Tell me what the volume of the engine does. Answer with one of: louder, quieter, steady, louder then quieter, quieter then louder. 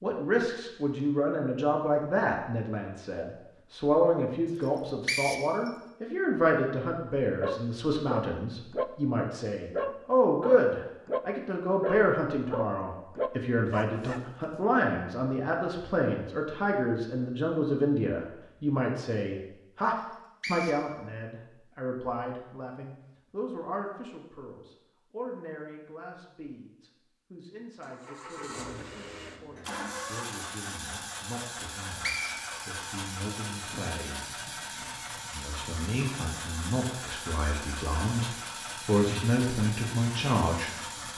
steady.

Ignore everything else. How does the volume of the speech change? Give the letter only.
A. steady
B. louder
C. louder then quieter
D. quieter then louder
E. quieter
D.